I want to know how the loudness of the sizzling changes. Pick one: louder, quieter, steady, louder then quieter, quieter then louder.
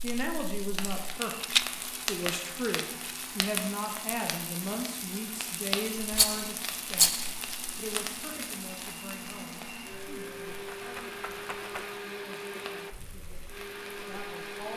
quieter.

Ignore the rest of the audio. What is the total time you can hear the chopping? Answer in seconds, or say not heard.
not heard.